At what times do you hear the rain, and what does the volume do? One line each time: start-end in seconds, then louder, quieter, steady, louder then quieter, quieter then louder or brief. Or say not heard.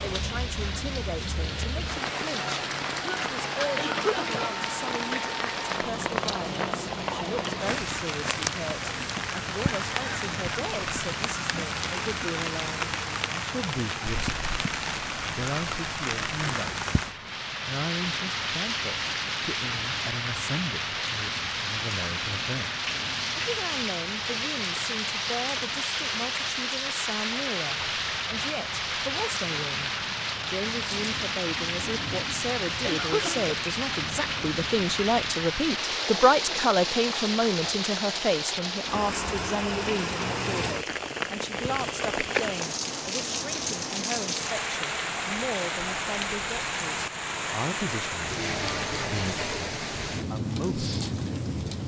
0.0-51.8 steady.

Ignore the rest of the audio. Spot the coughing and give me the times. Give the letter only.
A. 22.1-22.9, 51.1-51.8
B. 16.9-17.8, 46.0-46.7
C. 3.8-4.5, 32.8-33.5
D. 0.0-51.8
C.